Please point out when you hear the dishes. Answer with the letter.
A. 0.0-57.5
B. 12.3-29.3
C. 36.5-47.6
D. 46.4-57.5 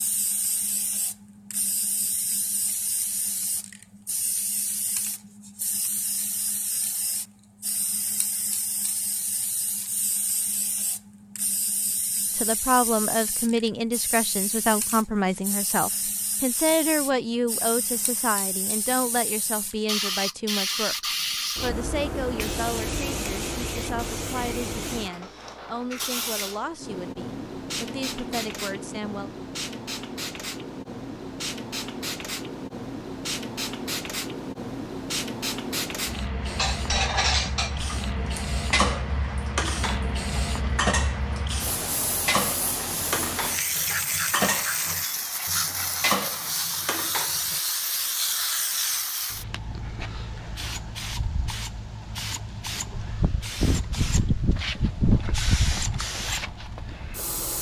C.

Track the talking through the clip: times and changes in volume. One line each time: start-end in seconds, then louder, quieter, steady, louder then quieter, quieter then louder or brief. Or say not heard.
12.3-29.3 quieter.